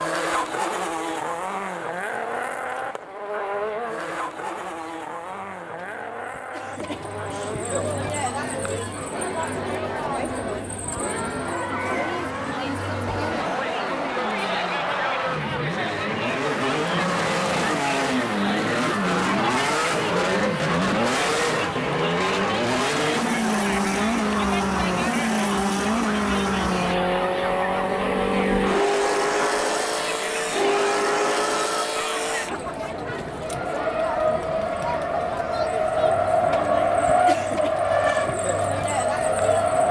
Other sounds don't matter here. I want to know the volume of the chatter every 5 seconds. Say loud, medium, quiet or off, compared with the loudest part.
quiet, loud, loud, loud, loud, loud, loud, loud.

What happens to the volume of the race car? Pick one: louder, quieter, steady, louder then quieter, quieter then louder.
louder.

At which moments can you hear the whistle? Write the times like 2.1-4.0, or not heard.
not heard.